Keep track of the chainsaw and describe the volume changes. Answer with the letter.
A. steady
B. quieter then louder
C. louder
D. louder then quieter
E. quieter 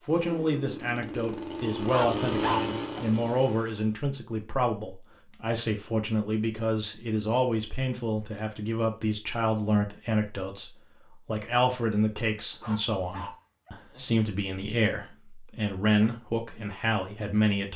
D.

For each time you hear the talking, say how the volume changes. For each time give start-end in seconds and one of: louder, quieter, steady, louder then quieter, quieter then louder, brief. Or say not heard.
0.1-17.7 steady.